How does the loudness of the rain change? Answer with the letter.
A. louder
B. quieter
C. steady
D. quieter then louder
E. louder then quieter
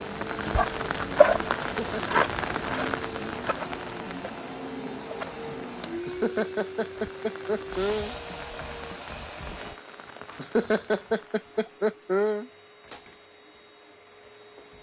B.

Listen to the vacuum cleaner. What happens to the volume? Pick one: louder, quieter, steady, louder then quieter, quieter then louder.
quieter.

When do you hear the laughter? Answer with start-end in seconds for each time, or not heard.
1.6-2.2, 6.0-8.2, 10.3-12.4.